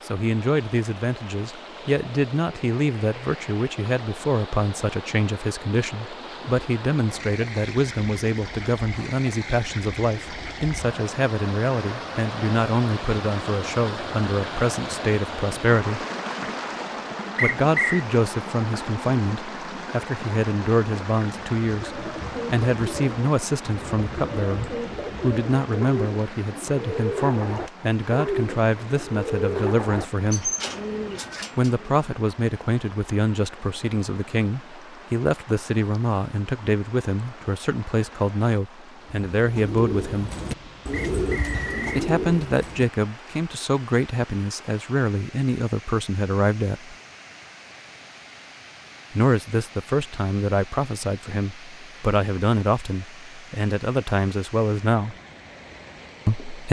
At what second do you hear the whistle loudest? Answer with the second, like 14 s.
18 s.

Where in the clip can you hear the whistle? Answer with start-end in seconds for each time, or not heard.
17.4-18.1, 40.9-41.9.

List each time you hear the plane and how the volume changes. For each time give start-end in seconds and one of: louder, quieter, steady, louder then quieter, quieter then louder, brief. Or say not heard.
not heard.